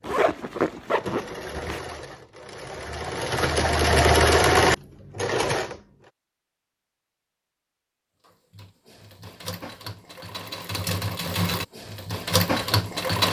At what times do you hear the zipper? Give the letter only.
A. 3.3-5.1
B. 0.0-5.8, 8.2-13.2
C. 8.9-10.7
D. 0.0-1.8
D.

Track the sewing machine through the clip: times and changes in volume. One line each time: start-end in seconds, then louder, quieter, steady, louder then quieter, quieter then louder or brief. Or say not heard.
0.0-5.8 louder
8.2-13.2 louder.